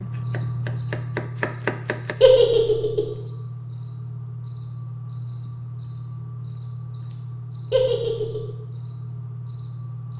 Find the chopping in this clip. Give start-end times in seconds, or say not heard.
0.0-2.3.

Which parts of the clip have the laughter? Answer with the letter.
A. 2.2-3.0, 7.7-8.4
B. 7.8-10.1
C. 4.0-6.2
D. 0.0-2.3
A.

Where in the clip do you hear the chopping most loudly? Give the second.
2 s.